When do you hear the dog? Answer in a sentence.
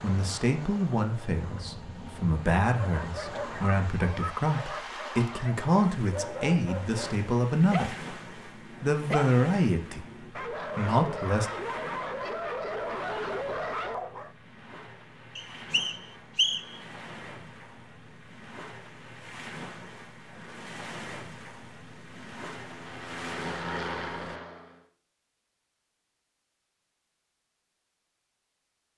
You can hear the dog from 2.8 to 14.3 s.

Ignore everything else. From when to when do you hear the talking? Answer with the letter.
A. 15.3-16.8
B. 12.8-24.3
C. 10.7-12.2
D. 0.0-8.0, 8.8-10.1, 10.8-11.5
D.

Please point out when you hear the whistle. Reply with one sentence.
The whistle can be heard from 15.3 to 16.8 s.